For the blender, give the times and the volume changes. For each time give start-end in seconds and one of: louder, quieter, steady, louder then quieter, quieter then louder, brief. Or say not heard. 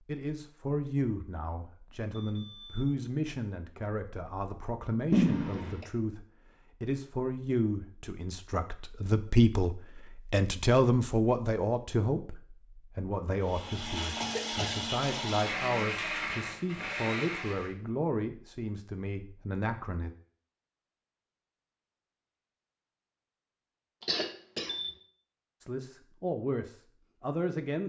13.4-17.8 steady.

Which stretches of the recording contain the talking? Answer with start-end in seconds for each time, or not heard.
0.1-20.1, 25.6-27.8.